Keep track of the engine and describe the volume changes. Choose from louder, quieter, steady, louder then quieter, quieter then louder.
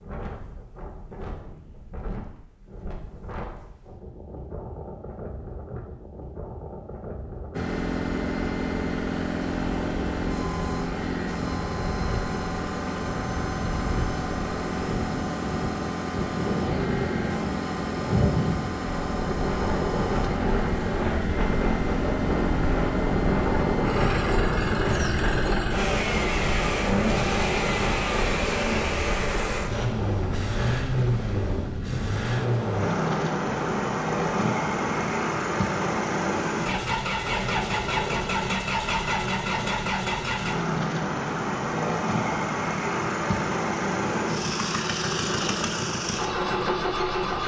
steady.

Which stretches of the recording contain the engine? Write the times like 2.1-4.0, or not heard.
7.5-47.4.